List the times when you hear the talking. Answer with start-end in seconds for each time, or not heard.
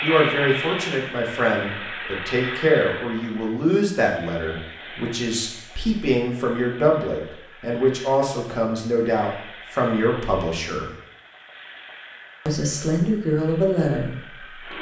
0.0-10.9, 12.4-14.7.